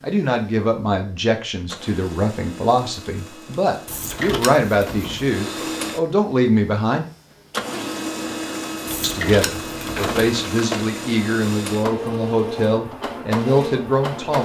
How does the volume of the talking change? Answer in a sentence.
The loudness of the talking stays about the same.